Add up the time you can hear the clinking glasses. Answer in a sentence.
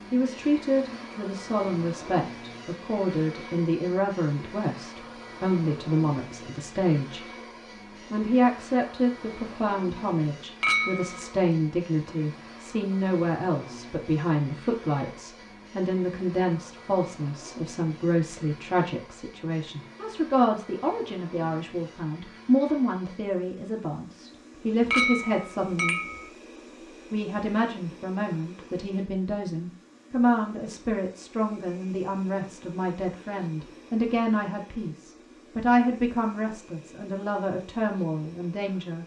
You can hear the clinking glasses for 2 seconds altogether.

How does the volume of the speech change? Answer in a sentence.
The volume of the speech stays about the same.